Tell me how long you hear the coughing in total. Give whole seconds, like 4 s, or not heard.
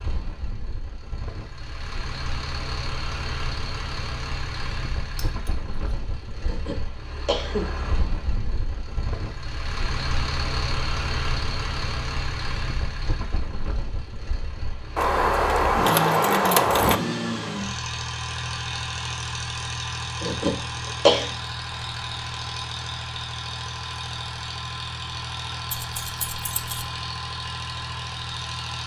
2 s.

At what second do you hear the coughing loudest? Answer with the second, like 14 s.
21 s.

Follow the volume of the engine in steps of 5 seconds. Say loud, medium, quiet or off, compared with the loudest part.
medium, medium, loud, loud, loud, loud.